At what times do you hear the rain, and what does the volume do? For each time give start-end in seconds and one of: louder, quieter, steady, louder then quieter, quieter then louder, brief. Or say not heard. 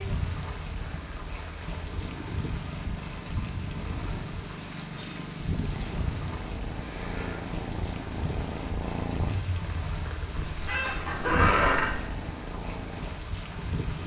0.0-14.0 steady.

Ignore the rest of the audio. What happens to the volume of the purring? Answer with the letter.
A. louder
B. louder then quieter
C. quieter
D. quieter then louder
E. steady
E.